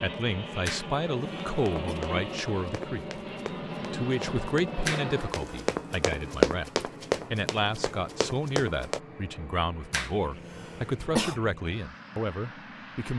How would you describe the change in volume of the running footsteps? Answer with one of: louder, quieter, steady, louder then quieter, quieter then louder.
louder then quieter.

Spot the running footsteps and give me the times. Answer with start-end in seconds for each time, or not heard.
1.6-9.0.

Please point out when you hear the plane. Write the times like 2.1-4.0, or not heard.
0.0-13.1.